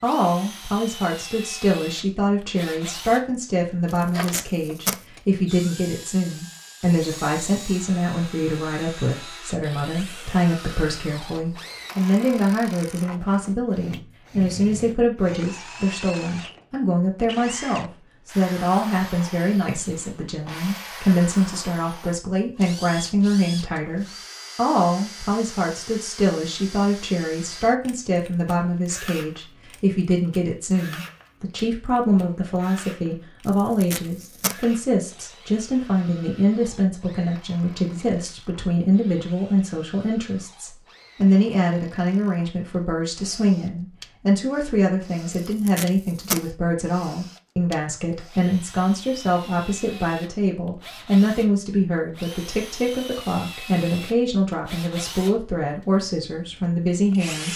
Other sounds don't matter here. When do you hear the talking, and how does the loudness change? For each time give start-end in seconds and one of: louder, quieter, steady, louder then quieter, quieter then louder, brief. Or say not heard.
0.0-57.5 steady.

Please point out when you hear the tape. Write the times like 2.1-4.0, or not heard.
3.9-5.0, 33.5-34.5, 45.5-46.5.